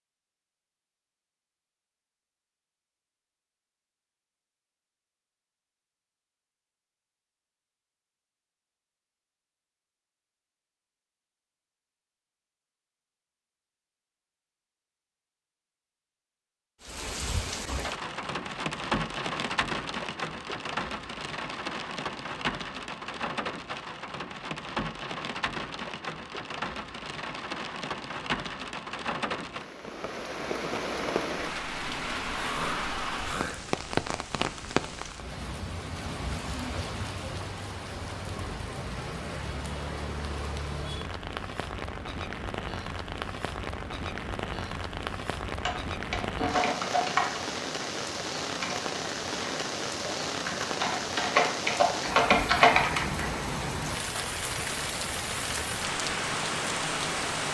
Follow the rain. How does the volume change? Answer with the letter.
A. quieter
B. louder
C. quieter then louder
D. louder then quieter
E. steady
E.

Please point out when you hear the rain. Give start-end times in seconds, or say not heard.
16.8-57.5.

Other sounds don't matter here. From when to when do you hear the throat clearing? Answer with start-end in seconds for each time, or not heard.
32.3-33.6.